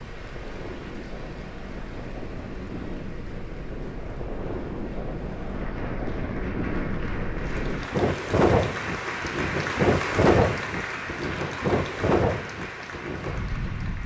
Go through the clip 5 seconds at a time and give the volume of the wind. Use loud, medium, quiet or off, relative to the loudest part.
medium, loud, loud.